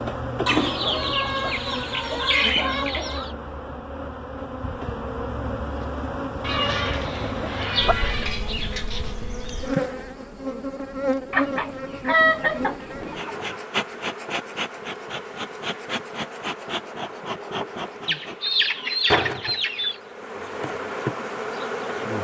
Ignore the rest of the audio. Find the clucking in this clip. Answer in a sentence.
You can hear the clucking from 0.5 to 3.3 s, from 6.4 to 9.2 s, from 11.3 to 13.6 s and from 18.1 to 20.0 s.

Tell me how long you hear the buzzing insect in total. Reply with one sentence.
The buzzing insect can be heard for 22 seconds in total.